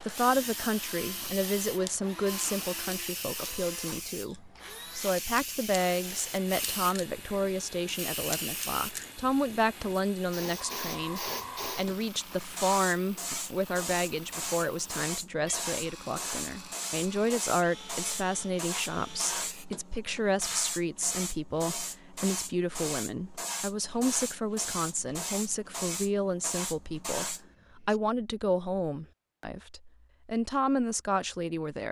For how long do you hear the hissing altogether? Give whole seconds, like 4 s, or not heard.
28 s.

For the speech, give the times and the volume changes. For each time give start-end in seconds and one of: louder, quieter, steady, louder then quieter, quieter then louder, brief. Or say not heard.
0.0-31.8 steady.